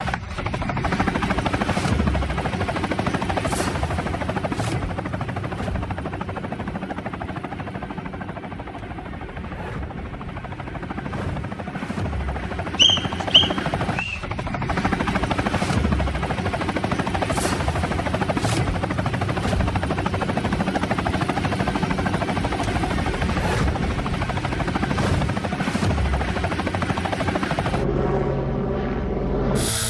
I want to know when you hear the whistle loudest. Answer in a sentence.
The loudest moment of the whistle is at 13 seconds.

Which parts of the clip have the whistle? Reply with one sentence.
You can hear the whistle from 12.8 to 14.2 s.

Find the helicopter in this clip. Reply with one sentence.
You can hear the helicopter from 0.0 to 29.8 s.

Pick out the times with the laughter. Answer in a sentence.
You can't hear the laughter here.